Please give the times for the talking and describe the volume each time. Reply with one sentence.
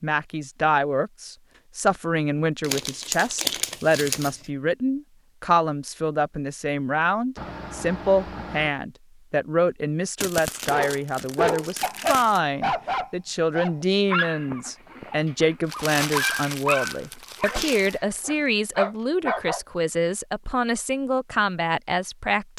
The talking can be heard from 0.0 to 22.5 s, at a steady volume.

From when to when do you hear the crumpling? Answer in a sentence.
The crumpling can be heard from 2.6 to 4.3 s, from 10.2 to 12.4 s and from 15.7 to 17.9 s.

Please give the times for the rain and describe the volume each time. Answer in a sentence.
The rain can't be heard in this clip.